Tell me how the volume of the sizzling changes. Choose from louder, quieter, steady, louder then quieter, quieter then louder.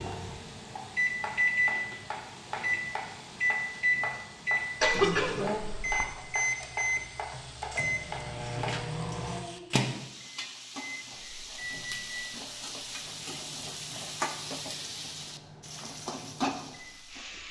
louder.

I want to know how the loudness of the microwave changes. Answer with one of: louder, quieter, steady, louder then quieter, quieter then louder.
quieter.